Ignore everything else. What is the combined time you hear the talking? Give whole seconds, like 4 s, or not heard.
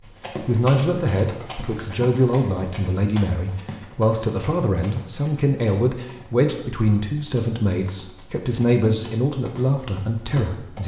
10 s.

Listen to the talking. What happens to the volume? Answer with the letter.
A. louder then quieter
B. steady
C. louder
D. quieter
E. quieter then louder
B.